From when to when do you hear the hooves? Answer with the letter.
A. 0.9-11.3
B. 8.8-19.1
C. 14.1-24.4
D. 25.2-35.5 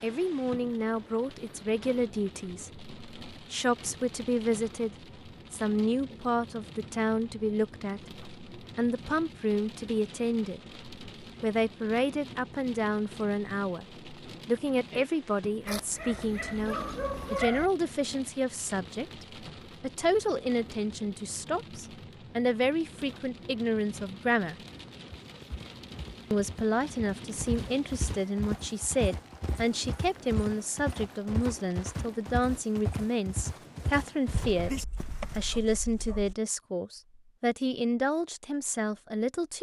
D.